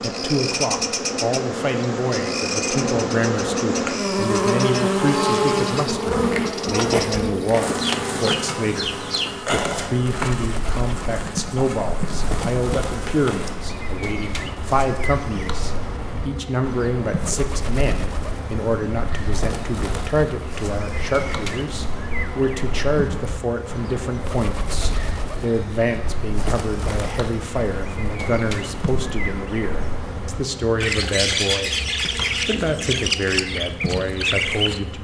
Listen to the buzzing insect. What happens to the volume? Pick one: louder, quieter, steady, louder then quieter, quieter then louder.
quieter.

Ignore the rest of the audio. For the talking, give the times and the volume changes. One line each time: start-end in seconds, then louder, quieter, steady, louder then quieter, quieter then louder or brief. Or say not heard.
0.0-31.8 steady
32.5-34.9 brief.